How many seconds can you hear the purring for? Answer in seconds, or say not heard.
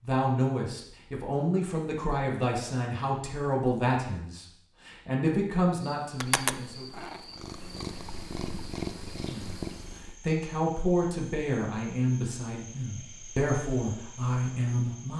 4 s.